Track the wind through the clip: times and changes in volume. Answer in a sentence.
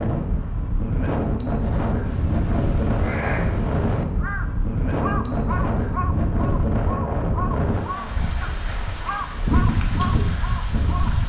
You can hear the wind from 0.0 to 11.2 s, at a steady volume.